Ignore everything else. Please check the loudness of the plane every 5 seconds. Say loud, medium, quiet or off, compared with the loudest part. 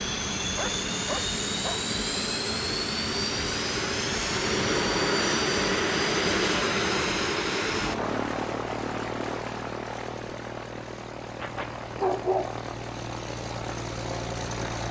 loud, loud, medium.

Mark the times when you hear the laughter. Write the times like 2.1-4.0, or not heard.
not heard.